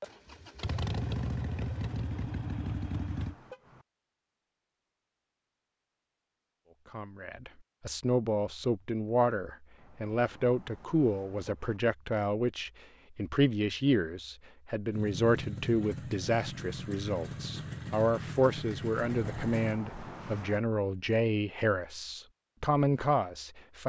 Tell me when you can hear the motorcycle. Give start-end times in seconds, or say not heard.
0.0-3.4, 14.9-19.8.